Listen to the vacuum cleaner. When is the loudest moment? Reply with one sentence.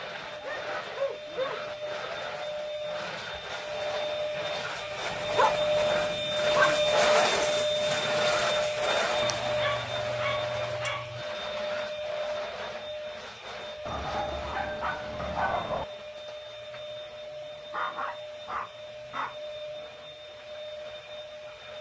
The volume of the vacuum cleaner peaks at 7 seconds.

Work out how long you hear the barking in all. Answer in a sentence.
The barking can be heard for 9 seconds in total.